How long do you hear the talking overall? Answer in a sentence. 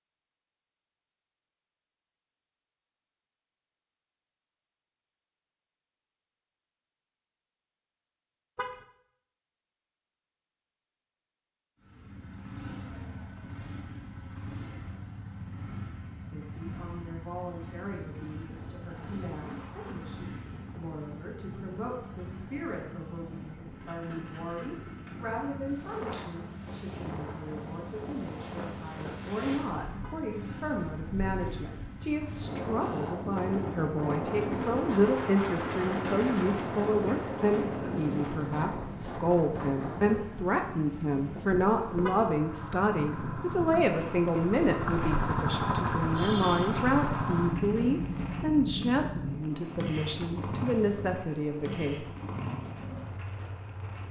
The talking can be heard for 36 seconds in total.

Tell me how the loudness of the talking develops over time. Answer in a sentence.
The volume of the talking goes up.